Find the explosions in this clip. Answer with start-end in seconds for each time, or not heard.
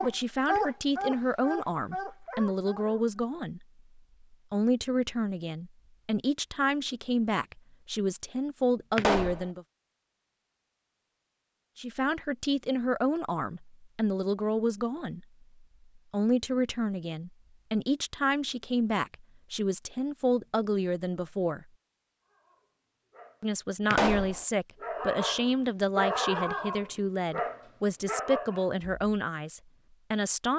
8.9-9.5, 23.9-24.4.